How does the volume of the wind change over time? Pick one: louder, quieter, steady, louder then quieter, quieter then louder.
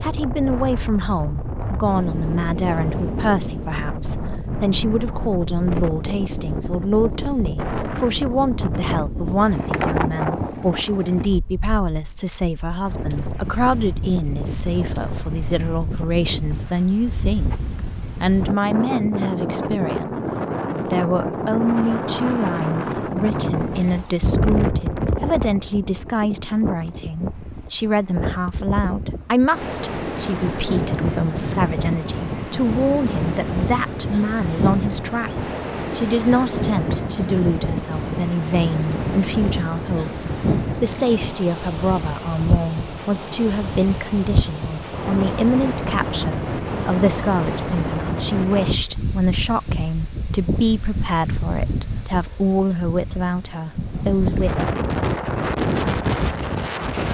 steady.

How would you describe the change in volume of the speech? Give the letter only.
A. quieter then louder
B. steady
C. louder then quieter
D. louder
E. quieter
B.